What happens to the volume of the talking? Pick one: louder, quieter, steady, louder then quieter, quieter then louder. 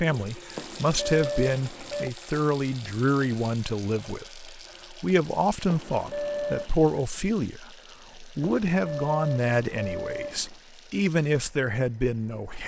steady.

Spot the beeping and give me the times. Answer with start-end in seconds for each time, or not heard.
0.6-2.1, 5.7-6.8, 8.4-10.6.